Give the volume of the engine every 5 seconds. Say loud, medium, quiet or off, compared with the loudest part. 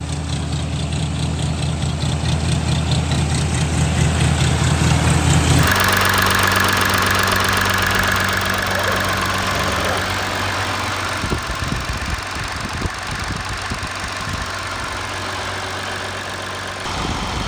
loud, loud, medium, medium.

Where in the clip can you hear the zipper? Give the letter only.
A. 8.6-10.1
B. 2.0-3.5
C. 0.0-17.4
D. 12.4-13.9
A.